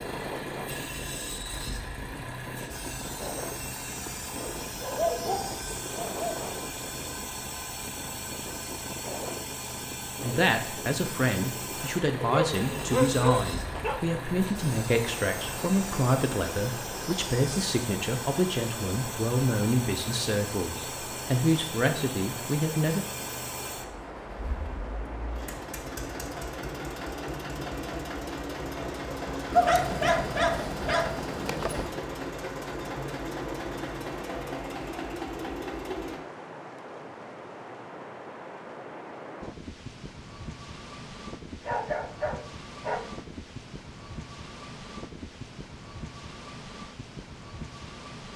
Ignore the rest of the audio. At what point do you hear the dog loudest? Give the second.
30 s.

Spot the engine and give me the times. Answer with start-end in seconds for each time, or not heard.
0.0-36.2.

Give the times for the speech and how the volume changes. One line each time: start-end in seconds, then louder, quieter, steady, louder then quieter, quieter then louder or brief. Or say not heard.
10.2-23.1 steady.